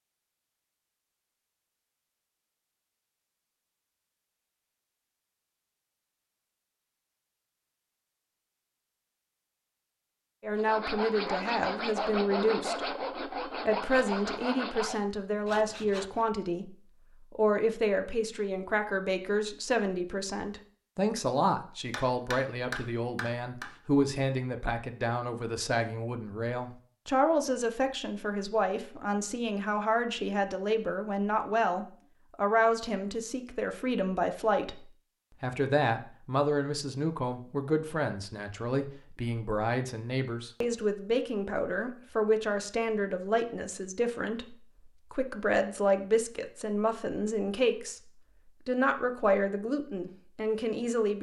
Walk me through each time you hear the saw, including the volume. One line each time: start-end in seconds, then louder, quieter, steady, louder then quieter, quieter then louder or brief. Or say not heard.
10.6-16.2 quieter.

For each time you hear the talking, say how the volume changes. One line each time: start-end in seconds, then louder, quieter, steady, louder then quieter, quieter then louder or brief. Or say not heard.
10.4-51.1 steady.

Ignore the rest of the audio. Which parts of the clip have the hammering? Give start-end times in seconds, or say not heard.
21.9-23.7.